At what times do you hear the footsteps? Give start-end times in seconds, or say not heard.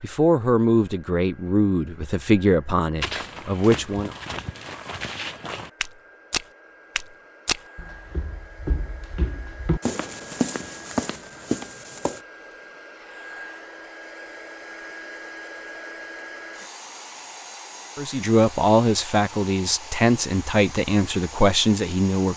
3.0-12.2.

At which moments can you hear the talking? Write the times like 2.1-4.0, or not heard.
0.0-4.2, 17.9-22.3.